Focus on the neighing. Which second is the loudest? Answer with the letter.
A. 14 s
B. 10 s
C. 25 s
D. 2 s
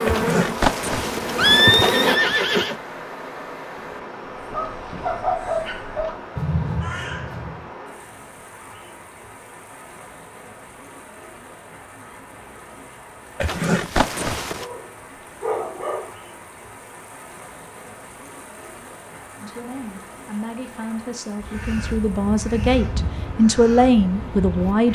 D.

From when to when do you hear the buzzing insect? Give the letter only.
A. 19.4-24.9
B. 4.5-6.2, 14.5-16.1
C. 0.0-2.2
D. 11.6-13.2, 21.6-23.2
C.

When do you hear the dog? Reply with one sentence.
The dog can be heard from 4.5 to 6.2 s and from 14.5 to 16.1 s.